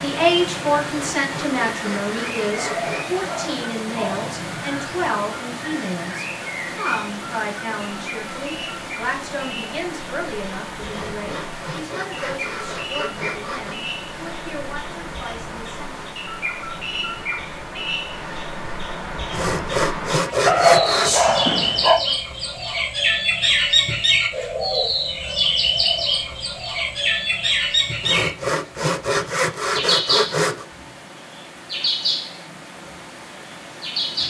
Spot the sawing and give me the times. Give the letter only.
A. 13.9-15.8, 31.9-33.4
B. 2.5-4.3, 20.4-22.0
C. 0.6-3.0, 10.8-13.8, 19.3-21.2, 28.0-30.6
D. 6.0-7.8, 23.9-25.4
C.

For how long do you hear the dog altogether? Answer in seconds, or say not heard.
3 s.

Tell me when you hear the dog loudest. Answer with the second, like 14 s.
21 s.